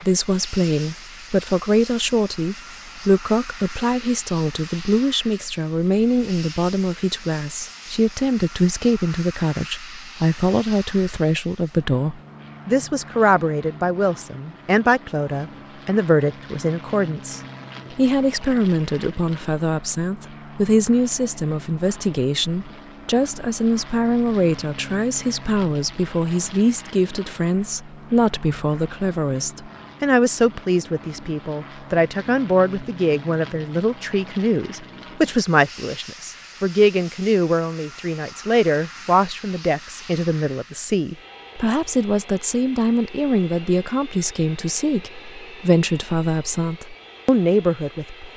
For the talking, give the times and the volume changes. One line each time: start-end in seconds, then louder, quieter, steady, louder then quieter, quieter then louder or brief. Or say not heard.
0.0-48.3 steady.